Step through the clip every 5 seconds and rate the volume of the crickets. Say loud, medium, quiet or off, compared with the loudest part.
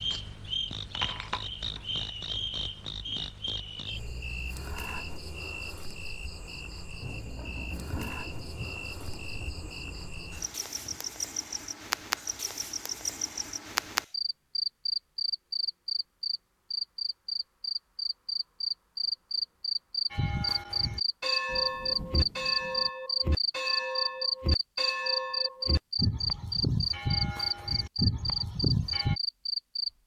medium, quiet, medium, loud, loud, loud.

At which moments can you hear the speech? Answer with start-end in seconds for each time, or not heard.
not heard.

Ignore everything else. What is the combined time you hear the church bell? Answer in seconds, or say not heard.
9 s.